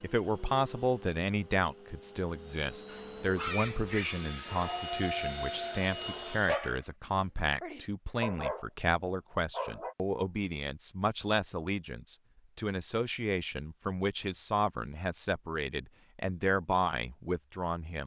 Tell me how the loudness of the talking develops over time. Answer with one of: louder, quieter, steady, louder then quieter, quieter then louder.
steady.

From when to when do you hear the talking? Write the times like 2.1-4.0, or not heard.
0.0-18.0.